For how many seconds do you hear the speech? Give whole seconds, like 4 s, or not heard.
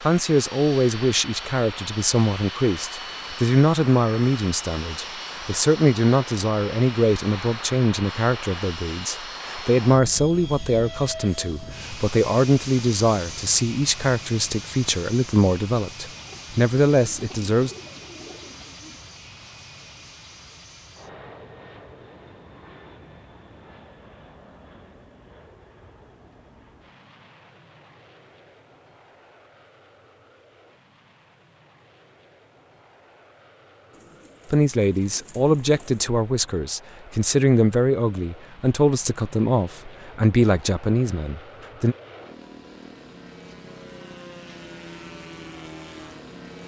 25 s.